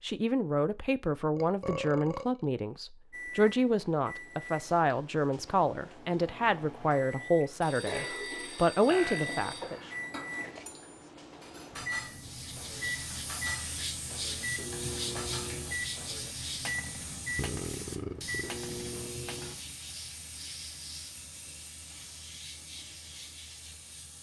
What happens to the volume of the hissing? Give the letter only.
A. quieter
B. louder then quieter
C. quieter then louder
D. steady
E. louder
A.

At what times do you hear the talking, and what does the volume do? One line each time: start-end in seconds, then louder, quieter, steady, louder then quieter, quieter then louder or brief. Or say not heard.
0.0-9.9 steady.